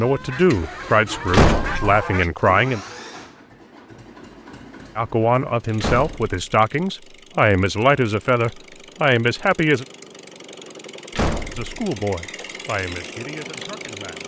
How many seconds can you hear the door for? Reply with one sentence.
You can hear the door for 2 seconds altogether.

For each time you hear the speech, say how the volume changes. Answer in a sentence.
The speech can be heard briefly from 0.0 to 2.8 s; from 5.0 to 9.8 s, at a steady volume; and briefly from 11.5 to 14.2 s.